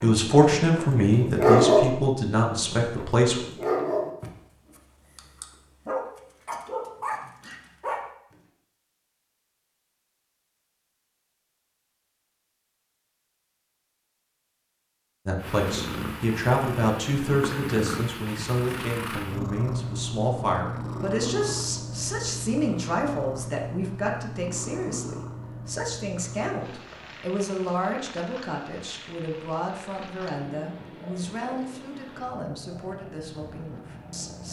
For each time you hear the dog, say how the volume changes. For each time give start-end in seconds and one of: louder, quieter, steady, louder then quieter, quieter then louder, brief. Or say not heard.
0.0-1.9 brief
2.5-8.0 quieter then louder.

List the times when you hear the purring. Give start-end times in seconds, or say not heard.
15.3-34.4.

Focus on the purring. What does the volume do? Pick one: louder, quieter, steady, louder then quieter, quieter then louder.
quieter.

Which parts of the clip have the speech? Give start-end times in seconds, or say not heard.
0.0-3.5, 15.2-34.4.